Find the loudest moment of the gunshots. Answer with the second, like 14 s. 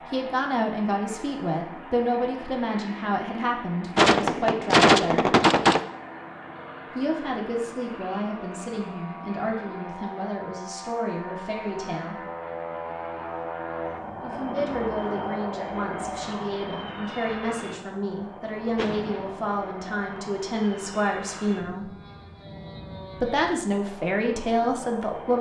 5 s.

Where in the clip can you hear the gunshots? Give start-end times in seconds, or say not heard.
4.0-5.8, 18.8-19.6.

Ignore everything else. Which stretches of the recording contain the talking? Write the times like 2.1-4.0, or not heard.
0.1-5.3, 7.0-12.2, 14.2-21.9, 23.2-25.3.